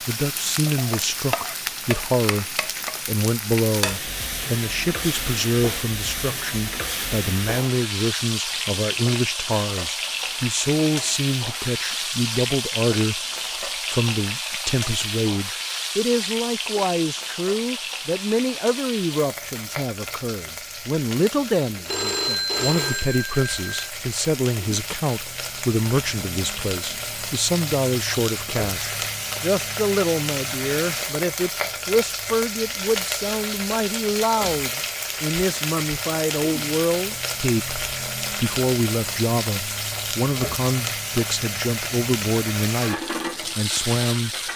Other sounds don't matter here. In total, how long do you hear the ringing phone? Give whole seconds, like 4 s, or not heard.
2 s.